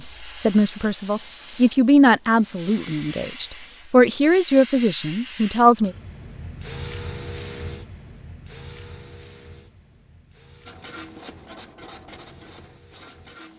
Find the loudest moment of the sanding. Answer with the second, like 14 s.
11 s.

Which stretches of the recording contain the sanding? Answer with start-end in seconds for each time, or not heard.
10.7-13.5.